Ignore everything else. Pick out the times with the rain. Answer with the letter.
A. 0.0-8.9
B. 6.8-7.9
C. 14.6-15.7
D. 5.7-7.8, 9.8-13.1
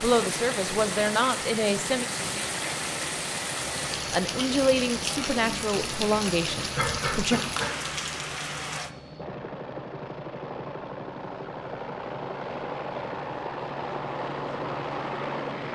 A.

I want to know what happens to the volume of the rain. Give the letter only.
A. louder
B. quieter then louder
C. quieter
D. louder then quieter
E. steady
E.